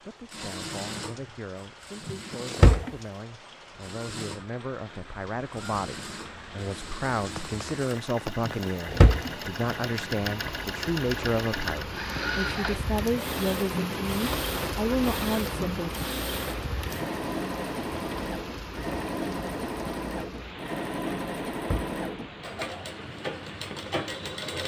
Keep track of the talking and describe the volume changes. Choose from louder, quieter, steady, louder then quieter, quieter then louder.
louder.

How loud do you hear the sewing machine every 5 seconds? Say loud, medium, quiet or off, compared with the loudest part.
medium, medium, loud, loud, loud.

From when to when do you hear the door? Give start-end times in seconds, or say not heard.
2.0-2.9, 8.4-9.8, 21.1-22.4.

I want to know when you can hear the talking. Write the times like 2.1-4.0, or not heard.
0.1-15.9.